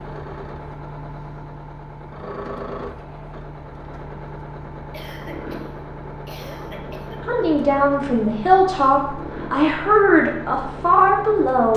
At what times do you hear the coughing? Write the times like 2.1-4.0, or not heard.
4.9-7.2.